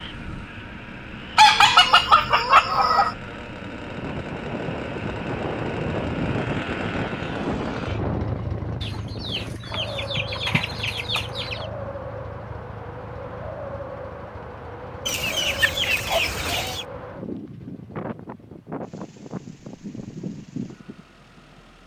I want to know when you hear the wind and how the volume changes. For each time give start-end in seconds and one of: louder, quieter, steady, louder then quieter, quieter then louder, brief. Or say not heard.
0.0-21.8 louder then quieter.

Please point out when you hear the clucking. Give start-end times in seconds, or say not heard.
1.4-3.1, 8.8-11.7, 15.1-16.9.